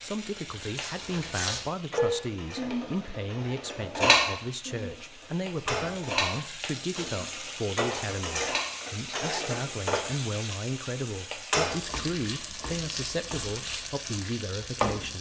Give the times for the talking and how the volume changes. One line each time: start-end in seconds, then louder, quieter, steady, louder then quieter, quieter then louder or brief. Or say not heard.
0.0-15.1 steady.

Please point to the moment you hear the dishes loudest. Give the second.
4 s.